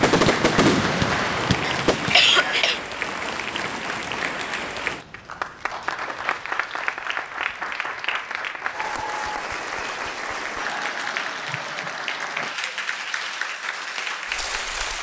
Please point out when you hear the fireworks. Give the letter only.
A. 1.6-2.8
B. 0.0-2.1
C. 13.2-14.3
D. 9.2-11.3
B.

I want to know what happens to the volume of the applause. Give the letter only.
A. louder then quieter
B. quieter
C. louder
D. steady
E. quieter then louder
D.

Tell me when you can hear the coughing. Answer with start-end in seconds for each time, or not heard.
1.6-2.8.